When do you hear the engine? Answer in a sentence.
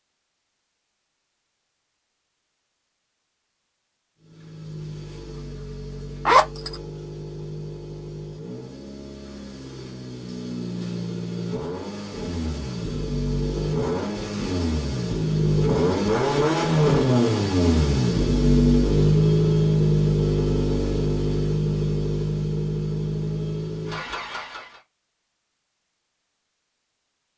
The engine can be heard from 4.2 to 24.8 s.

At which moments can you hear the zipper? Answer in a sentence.
The zipper can be heard from 6.2 to 6.8 s.